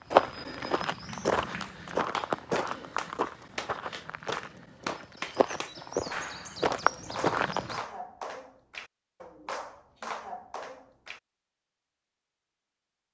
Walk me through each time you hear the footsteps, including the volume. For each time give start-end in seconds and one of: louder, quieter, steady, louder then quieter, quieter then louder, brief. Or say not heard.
0.1-7.8 quieter then louder.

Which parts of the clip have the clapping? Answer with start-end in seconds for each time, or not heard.
1.0-11.2.